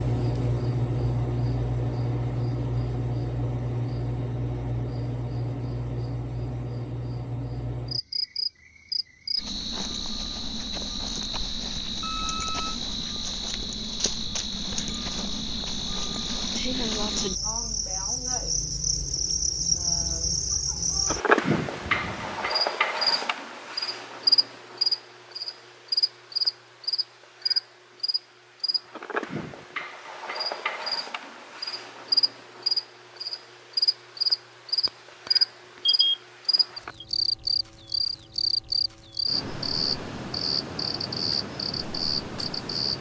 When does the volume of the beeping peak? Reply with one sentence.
The volume of the beeping peaks at 36 seconds.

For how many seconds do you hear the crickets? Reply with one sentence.
You can hear the crickets for 43 seconds altogether.